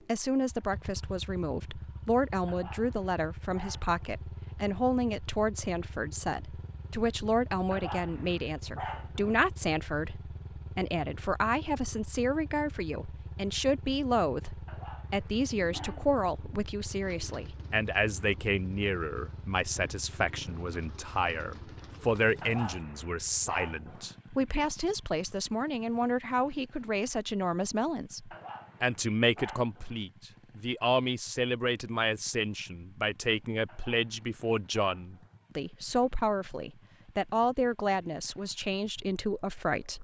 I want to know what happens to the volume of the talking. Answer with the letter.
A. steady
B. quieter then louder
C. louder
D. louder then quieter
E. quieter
A.